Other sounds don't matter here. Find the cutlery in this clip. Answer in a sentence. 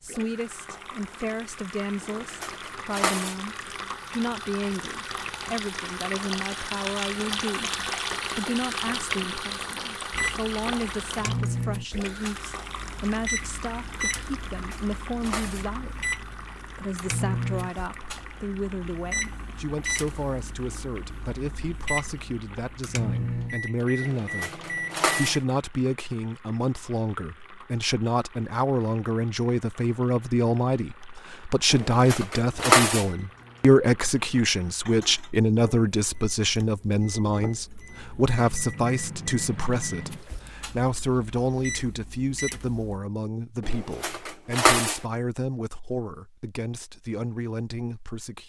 The cutlery can be heard from 2.0 to 3.4 s, from 14.5 to 15.7 s, from 24.0 to 25.4 s, from 31.7 to 33.0 s and from 43.6 to 45.0 s.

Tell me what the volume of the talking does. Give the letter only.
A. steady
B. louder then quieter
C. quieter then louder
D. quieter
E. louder
B.